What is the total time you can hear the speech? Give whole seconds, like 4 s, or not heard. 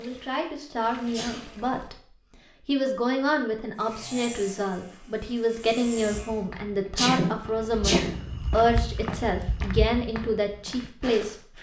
11 s.